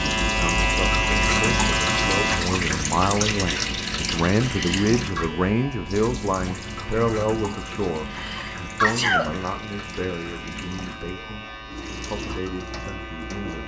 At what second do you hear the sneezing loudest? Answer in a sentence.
The volume of the sneezing peaks at 9 seconds.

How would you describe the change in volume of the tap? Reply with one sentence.
The volume of the tap goes down.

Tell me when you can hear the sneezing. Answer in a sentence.
You can hear the sneezing from 4.4 to 5.2 s and from 8.1 to 9.3 s.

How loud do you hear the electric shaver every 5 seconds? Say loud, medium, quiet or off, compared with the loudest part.
loud, quiet, quiet.